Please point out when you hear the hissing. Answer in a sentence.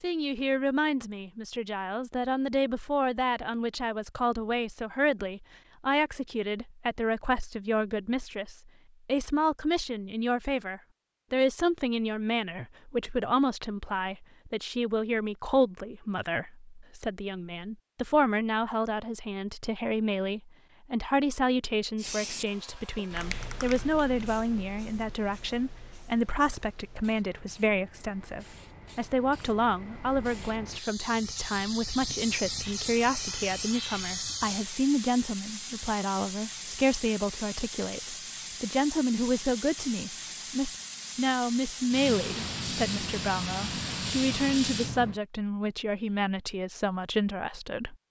The hissing can be heard from 21.9 to 45.2 s.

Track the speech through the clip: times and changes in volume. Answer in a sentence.
The speech can be heard from 0.0 to 48.0 s, at a steady volume.